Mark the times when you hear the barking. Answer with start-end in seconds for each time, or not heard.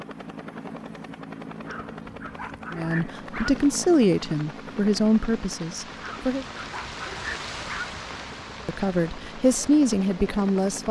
1.6-3.5, 6.0-7.9.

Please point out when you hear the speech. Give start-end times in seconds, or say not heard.
2.7-6.5, 8.7-10.8.